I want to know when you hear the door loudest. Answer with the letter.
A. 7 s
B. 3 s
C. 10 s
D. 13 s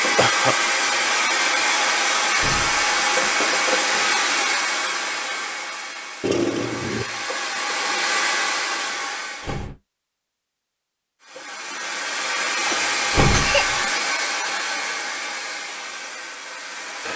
D.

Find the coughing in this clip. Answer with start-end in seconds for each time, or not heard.
0.1-0.6, 6.2-7.2, 12.7-13.8.